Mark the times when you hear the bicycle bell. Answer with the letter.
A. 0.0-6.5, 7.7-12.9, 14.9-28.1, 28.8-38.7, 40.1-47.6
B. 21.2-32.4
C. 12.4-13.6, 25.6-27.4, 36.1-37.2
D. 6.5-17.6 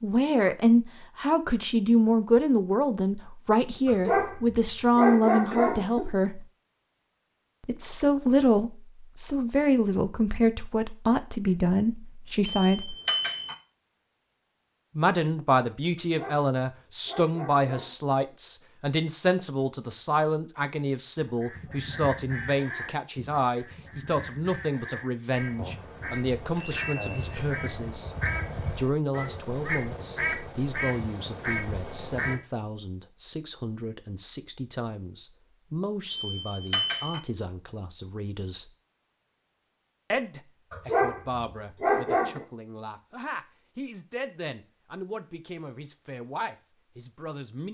C.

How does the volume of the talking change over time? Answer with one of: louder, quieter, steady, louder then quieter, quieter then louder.
quieter.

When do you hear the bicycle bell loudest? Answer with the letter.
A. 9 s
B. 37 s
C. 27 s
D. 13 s
C.